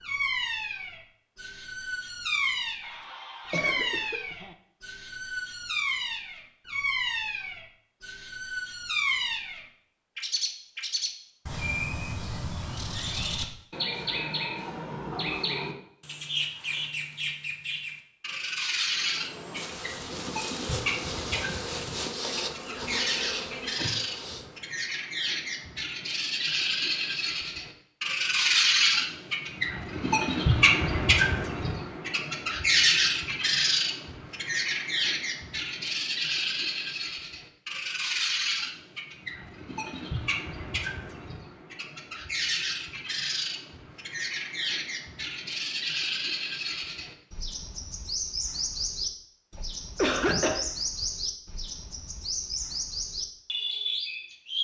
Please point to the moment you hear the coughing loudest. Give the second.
50 s.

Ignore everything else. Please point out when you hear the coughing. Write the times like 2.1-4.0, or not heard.
2.8-4.5, 49.5-51.0.